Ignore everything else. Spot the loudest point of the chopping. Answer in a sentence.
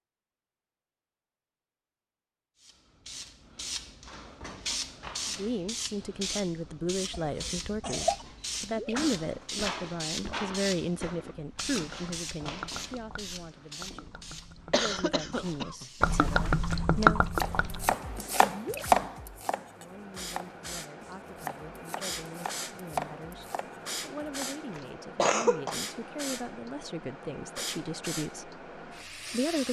The volume of the chopping peaks at 19 seconds.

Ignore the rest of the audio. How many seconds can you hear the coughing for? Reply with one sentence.
You can hear the coughing for 4 seconds altogether.